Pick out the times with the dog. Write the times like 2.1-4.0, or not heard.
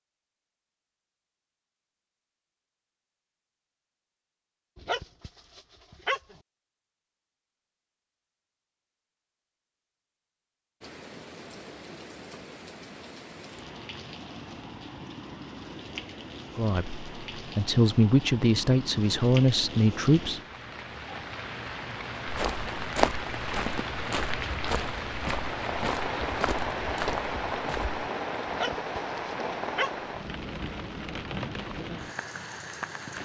4.8-6.4, 28.4-30.1.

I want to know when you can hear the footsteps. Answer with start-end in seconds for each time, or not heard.
22.2-28.0.